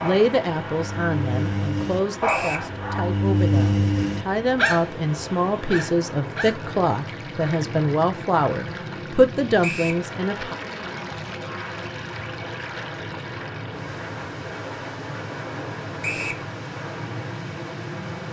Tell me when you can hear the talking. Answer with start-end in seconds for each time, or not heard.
0.0-10.6.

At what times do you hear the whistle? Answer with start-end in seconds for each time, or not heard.
2.2-2.7, 9.6-10.1, 16.0-16.4.